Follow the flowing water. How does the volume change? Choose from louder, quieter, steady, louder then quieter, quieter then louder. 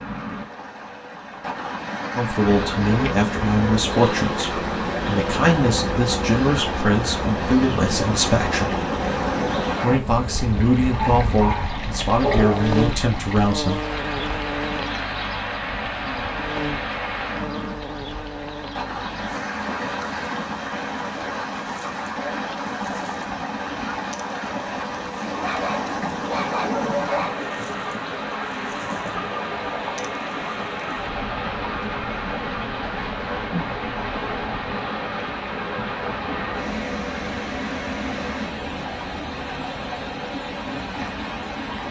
steady.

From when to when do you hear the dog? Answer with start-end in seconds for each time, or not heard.
10.9-12.8, 25.4-27.4.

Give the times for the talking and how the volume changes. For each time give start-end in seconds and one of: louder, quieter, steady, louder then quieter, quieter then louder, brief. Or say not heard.
2.1-8.7 steady
9.8-13.8 quieter then louder.